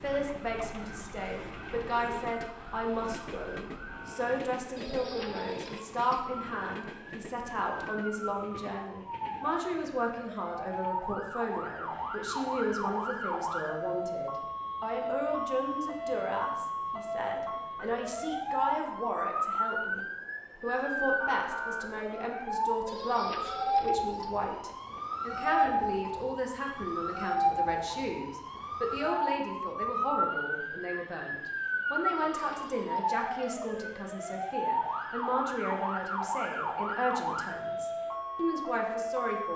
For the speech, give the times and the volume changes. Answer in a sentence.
The speech can be heard from 0.0 to 39.5 s, at a steady volume.